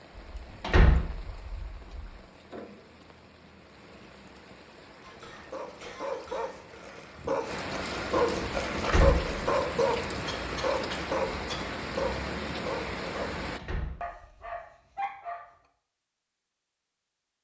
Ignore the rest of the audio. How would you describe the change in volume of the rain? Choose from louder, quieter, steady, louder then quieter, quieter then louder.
louder.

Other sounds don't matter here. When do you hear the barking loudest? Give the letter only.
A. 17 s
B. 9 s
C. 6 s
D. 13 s
B.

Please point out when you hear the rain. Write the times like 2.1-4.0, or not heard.
0.0-13.6.